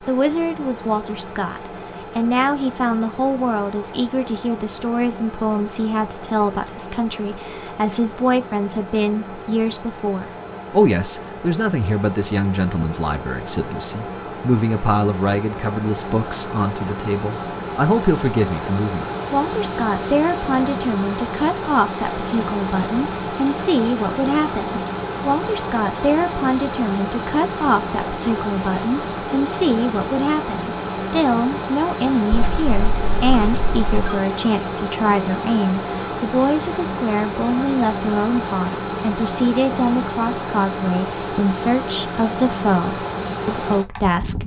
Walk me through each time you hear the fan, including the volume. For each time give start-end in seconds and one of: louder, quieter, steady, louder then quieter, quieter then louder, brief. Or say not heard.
0.0-44.4 louder.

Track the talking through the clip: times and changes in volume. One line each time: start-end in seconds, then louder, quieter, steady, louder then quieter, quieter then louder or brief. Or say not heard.
0.1-44.4 steady.